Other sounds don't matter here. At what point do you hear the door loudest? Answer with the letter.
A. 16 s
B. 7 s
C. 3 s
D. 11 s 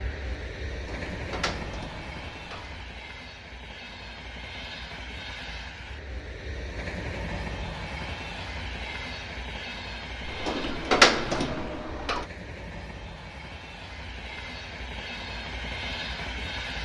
D.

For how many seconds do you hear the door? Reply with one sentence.
You can hear the door for 4 seconds altogether.